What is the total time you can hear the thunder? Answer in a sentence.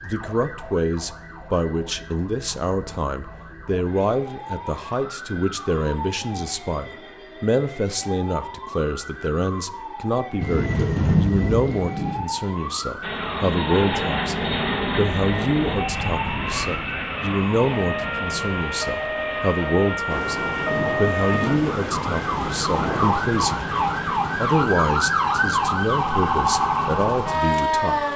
The thunder can be heard for 5 seconds in total.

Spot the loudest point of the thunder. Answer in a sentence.
The loudest moment of the thunder is at 11 seconds.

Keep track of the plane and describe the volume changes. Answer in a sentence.
The volume of the plane goes down.